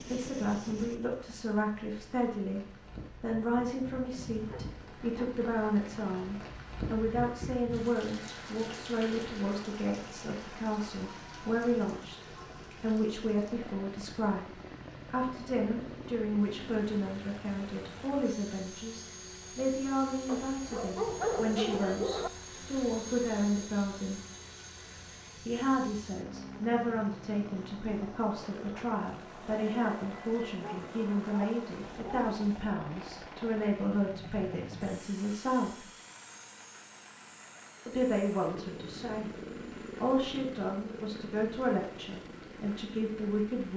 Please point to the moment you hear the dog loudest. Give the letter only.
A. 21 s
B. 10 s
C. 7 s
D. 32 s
A.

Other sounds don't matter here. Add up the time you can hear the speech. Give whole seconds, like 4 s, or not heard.
39 s.